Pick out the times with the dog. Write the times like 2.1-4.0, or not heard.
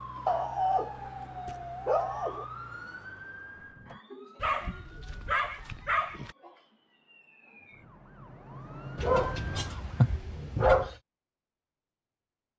0.2-2.5, 4.4-6.3, 8.9-10.9.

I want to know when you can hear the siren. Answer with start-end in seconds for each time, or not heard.
0.0-10.1.